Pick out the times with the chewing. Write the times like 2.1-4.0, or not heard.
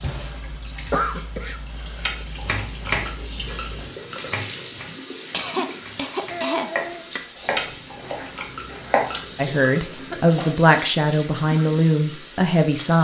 2.0-4.7, 7.5-10.3.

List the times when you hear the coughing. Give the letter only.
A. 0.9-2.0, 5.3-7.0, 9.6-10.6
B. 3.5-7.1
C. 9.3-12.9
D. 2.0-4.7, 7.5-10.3
A.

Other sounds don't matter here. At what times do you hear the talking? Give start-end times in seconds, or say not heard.
9.3-12.9.